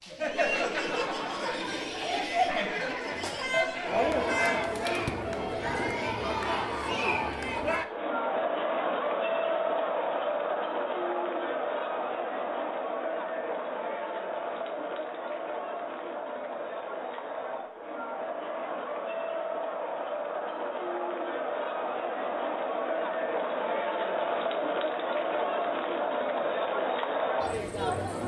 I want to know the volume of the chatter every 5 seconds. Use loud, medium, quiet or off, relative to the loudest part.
loud, loud, loud, medium, loud, loud.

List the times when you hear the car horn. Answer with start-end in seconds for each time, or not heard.
3.1-4.8.